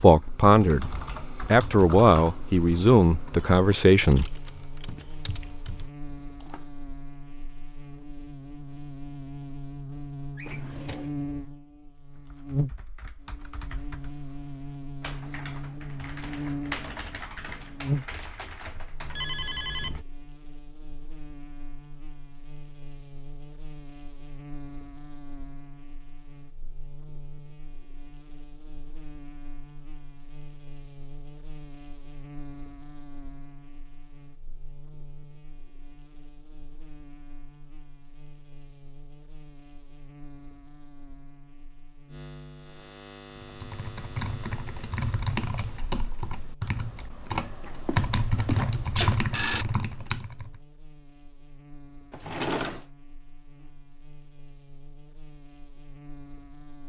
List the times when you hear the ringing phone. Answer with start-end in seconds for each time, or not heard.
19.0-20.1, 47.9-49.6.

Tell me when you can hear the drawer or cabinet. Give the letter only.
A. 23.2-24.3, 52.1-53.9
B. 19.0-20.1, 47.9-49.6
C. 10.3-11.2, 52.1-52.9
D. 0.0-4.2
C.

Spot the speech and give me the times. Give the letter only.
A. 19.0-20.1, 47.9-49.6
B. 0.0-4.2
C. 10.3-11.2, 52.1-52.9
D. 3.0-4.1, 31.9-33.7
B.